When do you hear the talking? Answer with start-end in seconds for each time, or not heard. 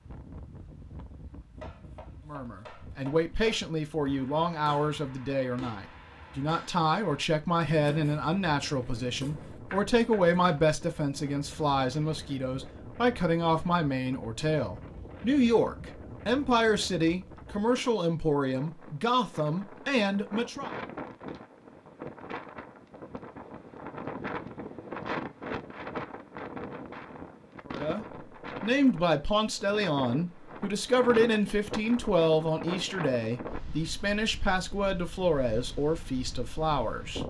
2.3-20.7, 27.6-37.2.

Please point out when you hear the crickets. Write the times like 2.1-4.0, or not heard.
not heard.